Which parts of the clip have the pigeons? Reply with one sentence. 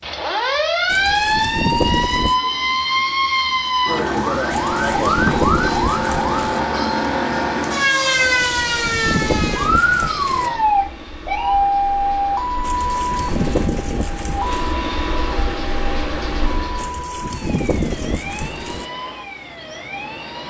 The pigeons can be heard from 0.8 to 2.4 s, from 4.5 to 6.6 s, from 8.3 to 10.5 s, from 12.6 to 14.7 s and from 16.8 to 18.9 s.